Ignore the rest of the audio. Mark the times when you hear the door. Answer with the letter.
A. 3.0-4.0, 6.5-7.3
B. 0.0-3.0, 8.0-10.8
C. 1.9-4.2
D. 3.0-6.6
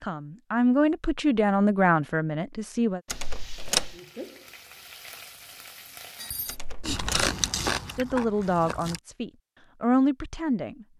A.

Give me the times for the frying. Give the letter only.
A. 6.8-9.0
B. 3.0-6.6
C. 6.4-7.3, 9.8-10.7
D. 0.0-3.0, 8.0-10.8
B.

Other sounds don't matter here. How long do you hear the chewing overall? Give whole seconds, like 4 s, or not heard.
2 s.